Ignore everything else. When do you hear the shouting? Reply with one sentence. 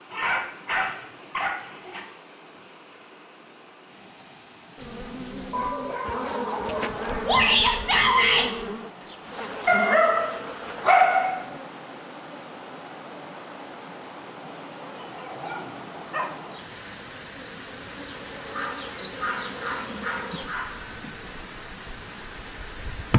The shouting can be heard from 7.2 to 8.4 s.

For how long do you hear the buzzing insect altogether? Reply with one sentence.
The buzzing insect can be heard for 18 seconds in total.